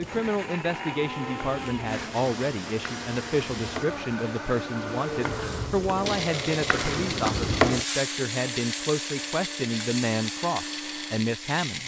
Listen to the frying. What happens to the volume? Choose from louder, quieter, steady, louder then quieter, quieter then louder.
louder then quieter.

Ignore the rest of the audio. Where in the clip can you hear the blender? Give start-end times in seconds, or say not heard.
0.0-11.8.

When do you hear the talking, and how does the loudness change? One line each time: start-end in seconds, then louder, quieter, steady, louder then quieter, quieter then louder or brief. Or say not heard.
0.0-11.8 steady.